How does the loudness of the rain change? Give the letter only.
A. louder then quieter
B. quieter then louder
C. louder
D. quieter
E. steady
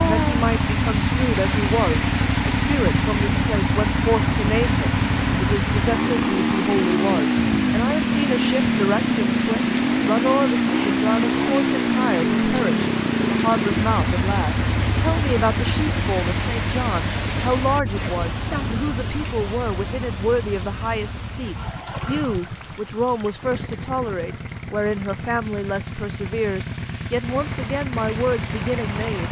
D.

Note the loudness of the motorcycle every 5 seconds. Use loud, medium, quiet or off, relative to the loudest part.
loud, loud, loud, medium, quiet, medium.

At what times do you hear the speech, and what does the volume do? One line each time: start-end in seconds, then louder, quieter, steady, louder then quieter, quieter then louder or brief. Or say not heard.
0.0-29.2 steady.